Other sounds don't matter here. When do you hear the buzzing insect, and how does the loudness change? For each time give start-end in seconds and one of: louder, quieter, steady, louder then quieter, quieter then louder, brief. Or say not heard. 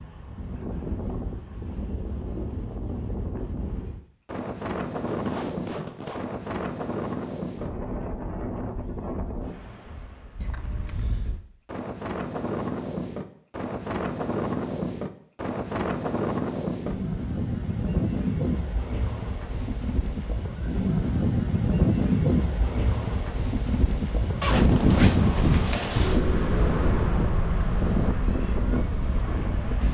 not heard.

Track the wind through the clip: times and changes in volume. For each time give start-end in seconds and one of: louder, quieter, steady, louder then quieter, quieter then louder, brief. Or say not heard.
0.0-29.8 louder.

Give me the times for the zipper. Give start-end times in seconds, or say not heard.
5.0-6.3, 10.4-11.2, 24.4-26.2.